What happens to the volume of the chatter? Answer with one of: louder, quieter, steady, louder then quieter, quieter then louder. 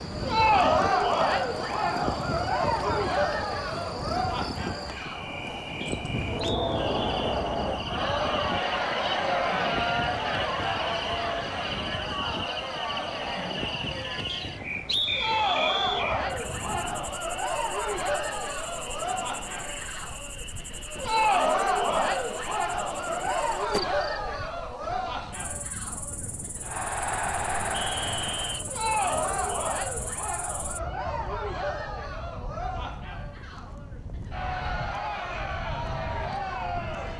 quieter.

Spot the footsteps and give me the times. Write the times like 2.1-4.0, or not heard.
not heard.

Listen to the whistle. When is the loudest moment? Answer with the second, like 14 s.
15 s.